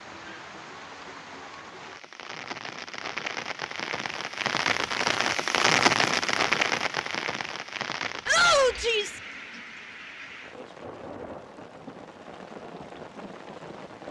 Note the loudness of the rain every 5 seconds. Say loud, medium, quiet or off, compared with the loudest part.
medium, loud, quiet.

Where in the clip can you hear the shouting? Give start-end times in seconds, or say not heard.
8.2-9.2.